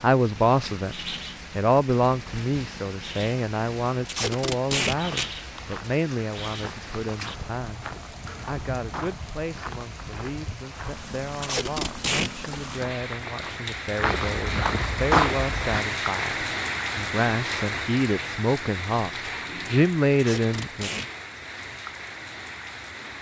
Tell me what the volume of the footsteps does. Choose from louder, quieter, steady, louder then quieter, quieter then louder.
louder.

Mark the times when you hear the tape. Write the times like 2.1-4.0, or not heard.
4.0-5.2, 11.3-12.3, 20.1-21.1.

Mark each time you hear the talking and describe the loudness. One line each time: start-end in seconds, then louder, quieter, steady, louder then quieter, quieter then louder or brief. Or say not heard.
0.0-0.9 brief
1.6-19.1 quieter then louder
19.7-20.9 brief.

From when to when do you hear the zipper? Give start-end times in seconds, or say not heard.
not heard.